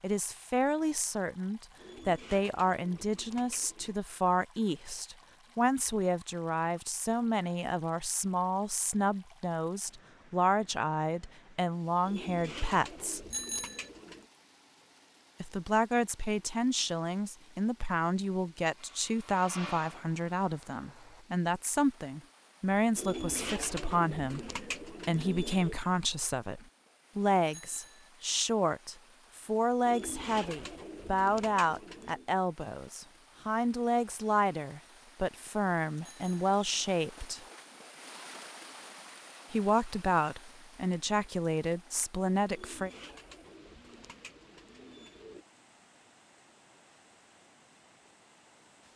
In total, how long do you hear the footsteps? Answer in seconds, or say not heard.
not heard.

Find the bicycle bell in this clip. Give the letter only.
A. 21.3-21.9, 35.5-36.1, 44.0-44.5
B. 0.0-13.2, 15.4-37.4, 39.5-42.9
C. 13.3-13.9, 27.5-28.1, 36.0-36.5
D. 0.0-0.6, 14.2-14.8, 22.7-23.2
C.